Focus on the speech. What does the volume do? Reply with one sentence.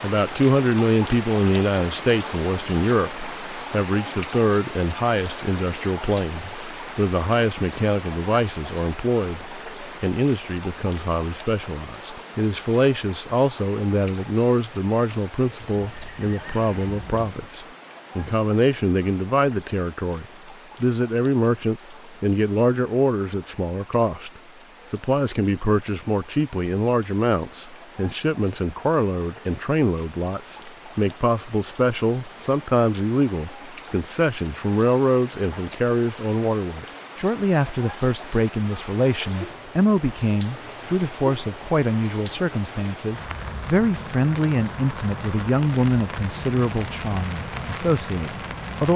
The loudness of the speech stays about the same.